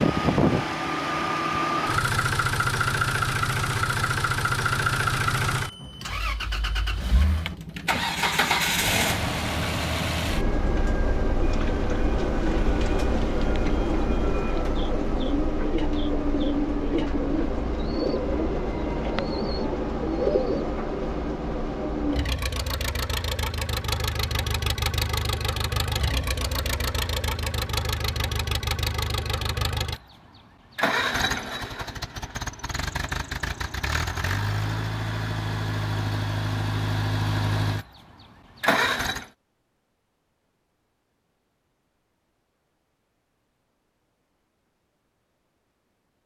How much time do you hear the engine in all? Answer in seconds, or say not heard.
39 s.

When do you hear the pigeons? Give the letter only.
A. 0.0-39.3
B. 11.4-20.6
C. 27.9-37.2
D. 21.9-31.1
B.